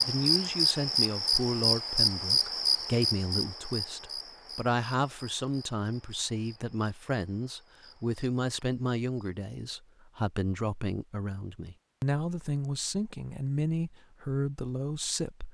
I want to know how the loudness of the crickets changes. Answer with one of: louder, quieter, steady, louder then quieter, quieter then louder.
quieter.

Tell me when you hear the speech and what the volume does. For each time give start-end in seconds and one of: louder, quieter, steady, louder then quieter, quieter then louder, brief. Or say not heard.
0.1-15.4 steady.